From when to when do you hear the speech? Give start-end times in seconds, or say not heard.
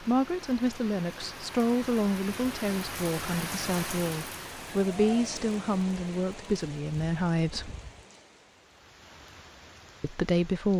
0.0-7.7, 10.0-10.7.